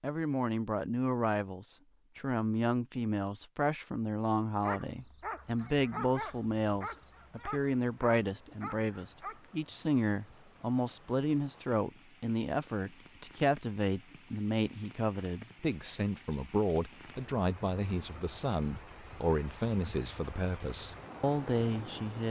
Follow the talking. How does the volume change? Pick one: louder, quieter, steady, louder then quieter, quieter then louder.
steady.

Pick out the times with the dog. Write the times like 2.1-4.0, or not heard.
4.6-9.4.